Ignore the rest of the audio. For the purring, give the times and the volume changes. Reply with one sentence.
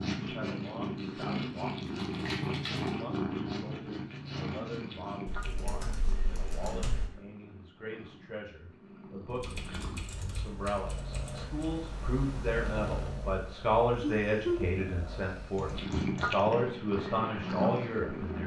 You can hear the purring from 0.0 to 18.4 s, getting quieter then louder.